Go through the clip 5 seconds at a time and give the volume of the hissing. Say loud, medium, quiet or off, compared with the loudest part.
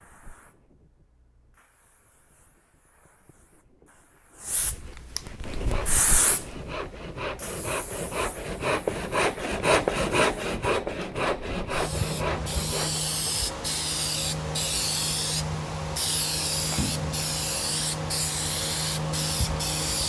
quiet, medium, loud, loud.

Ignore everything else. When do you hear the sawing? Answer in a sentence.
You can hear the sawing from 5.5 to 13.0 s.